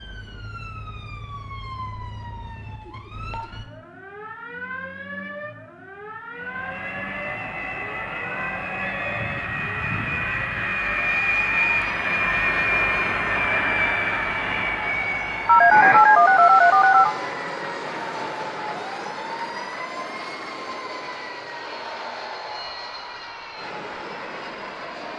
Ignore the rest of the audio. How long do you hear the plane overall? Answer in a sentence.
The plane can be heard for 19 seconds in total.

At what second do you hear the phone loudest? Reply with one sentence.
The loudest moment of the phone is at 16 seconds.